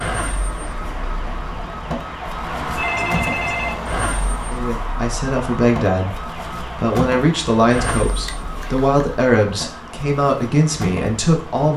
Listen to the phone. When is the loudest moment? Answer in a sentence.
The loudest moment of the phone is at 3 seconds.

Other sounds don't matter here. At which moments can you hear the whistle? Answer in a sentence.
The whistle can't be heard in this clip.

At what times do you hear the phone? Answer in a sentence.
You can hear the phone from 2.5 to 3.8 s and from 8.1 to 9.0 s.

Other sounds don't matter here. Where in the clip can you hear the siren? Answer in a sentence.
You can hear the siren from 0.0 to 11.7 s.